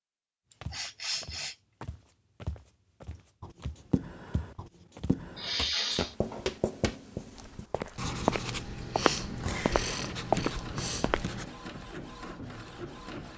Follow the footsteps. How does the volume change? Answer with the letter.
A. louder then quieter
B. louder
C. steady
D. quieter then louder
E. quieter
B.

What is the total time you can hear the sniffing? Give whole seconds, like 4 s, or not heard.
4 s.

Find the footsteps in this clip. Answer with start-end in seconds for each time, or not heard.
0.6-11.4.